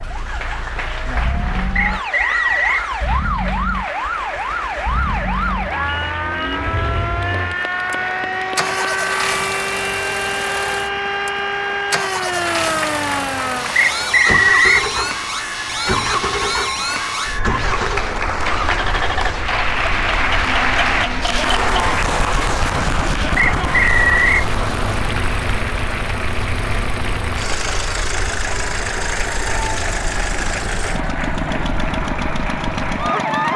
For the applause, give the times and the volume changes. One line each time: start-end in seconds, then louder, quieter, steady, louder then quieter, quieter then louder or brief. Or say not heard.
0.0-33.5 louder then quieter.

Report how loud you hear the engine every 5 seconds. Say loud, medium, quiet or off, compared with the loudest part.
medium, loud, loud, loud, loud, loud, loud.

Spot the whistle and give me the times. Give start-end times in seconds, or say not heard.
1.8-2.9, 13.8-14.8, 23.4-24.4.